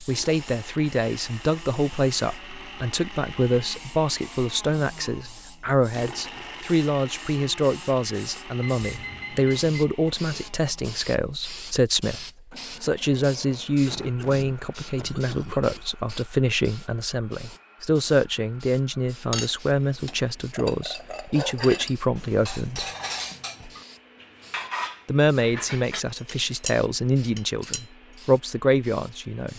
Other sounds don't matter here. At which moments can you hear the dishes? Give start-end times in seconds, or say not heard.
19.3-27.9.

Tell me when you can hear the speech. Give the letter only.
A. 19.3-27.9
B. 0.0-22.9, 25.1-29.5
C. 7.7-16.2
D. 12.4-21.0
B.